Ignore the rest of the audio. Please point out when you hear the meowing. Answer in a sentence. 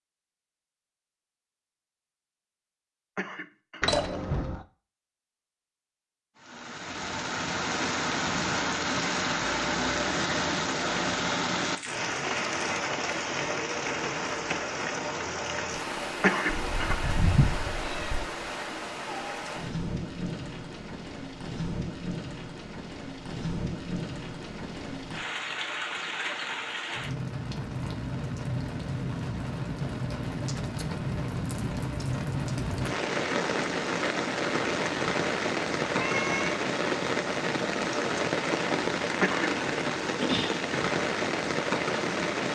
You can hear the meowing from 3.8 to 4.6 s, from 16.5 to 18.2 s and from 35.8 to 36.6 s.